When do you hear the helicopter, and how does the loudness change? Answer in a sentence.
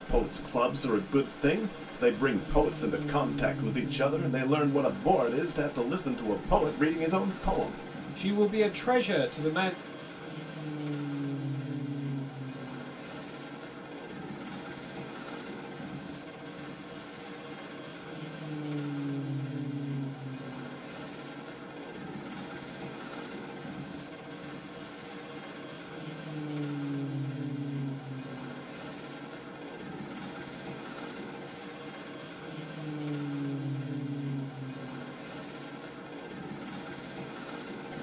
You can hear the helicopter from 0.0 to 37.9 s, at a steady volume.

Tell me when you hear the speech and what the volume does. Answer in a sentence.
You can hear the speech from 0.0 to 9.8 s, at a steady volume.